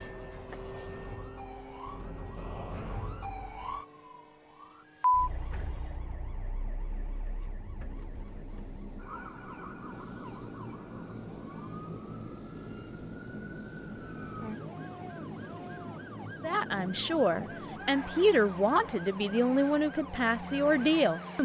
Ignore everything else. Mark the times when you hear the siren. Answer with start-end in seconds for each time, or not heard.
0.0-21.4.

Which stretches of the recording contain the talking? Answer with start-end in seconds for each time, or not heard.
16.4-21.4.